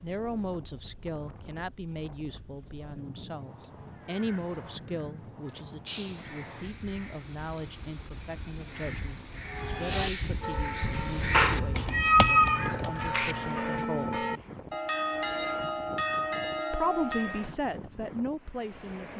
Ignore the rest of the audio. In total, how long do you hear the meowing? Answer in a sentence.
The meowing can be heard for 2 seconds in total.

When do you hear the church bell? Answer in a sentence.
The church bell can be heard from 9.4 to 17.5 s.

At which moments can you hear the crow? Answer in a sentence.
The crow can be heard from 3.9 to 13.7 s.